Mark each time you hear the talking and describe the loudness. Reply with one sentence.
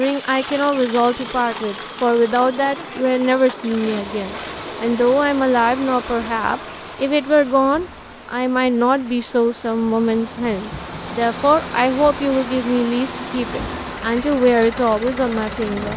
You can hear the talking from 0.0 to 15.9 s, at a steady volume.